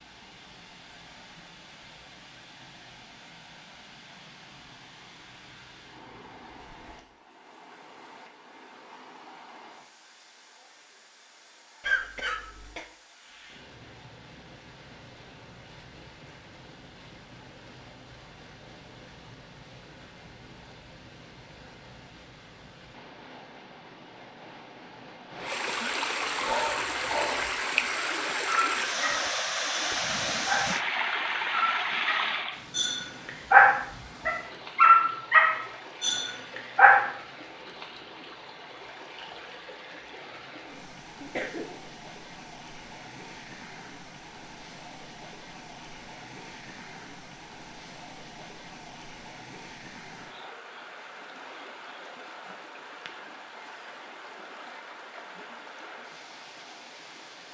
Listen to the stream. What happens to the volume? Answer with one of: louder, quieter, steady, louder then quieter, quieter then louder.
louder then quieter.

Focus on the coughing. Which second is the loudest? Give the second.
12 s.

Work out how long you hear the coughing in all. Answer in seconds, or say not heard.
2 s.